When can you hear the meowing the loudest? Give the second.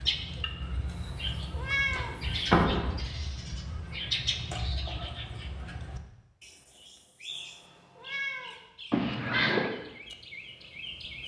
2 s.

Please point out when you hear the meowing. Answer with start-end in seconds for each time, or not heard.
0.8-2.5, 7.2-8.7.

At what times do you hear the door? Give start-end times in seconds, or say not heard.
1.9-3.0, 8.9-9.7.